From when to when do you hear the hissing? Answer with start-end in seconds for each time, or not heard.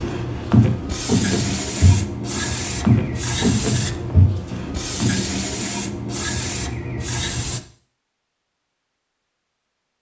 0.0-7.6.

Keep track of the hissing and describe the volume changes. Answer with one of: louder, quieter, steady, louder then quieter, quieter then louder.
steady.